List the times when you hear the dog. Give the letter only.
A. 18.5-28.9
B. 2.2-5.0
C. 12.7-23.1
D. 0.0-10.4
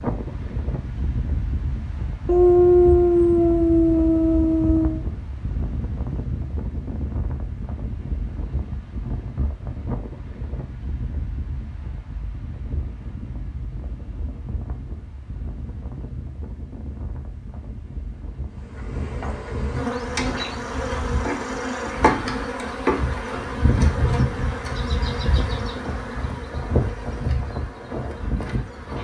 B.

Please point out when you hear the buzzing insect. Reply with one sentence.
You can hear the buzzing insect from 18.5 to 28.9 s.